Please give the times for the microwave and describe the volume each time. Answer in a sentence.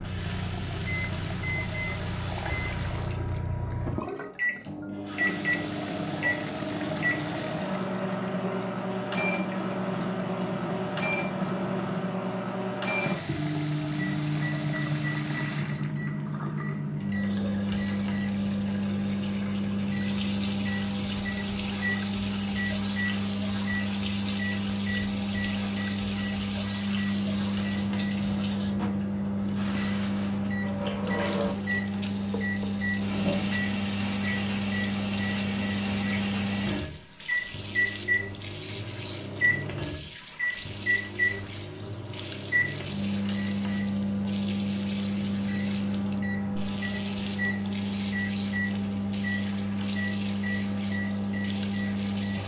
The microwave can be heard from 0.0 to 52.4 s, at a steady volume.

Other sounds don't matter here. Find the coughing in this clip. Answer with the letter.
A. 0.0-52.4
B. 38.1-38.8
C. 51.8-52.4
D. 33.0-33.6
D.